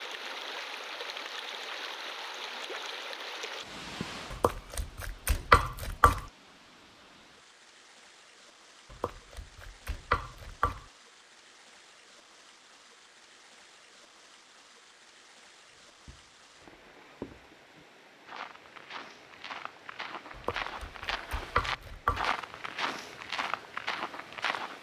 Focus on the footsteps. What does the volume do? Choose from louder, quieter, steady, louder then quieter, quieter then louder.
louder.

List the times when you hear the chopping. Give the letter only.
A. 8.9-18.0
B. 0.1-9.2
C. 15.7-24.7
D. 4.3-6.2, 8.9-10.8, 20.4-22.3
D.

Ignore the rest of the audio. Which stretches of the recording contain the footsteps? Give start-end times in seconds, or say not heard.
15.7-24.7.